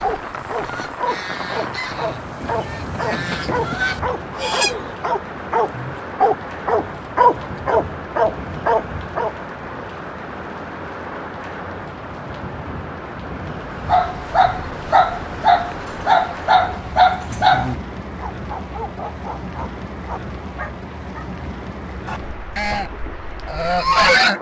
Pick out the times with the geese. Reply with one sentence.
The geese can be heard from 0.0 to 5.0 s and from 22.1 to 24.3 s.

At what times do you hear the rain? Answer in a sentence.
You can hear the rain from 0.0 to 24.3 s.